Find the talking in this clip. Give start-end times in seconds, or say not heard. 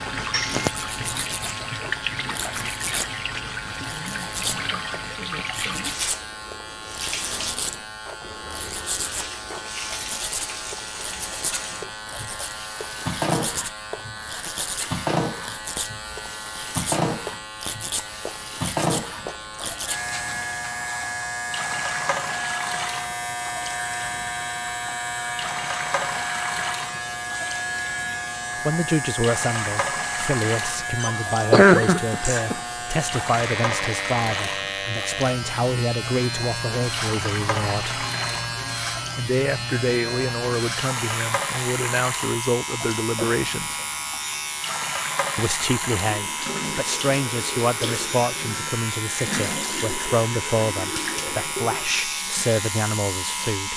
28.6-38.0, 39.1-43.8, 45.4-53.7.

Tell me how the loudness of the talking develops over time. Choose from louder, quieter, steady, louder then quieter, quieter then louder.
steady.